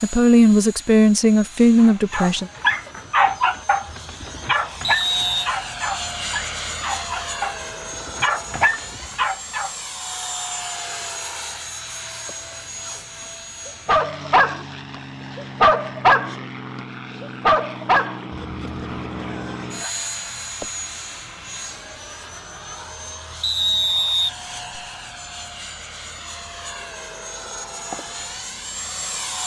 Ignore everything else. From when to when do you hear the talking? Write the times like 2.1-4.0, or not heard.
0.0-2.5.